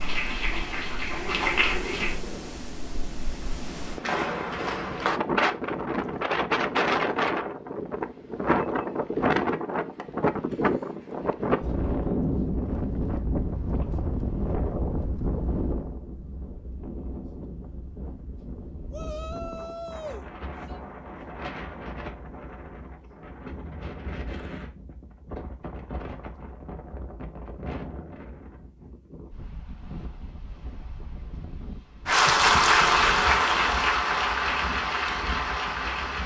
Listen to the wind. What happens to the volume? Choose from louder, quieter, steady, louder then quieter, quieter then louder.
quieter.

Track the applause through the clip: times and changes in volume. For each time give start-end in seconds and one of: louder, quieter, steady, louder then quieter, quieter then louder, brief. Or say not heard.
0.0-2.2 brief
32.0-36.2 quieter.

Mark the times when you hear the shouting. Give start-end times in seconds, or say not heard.
18.9-20.8.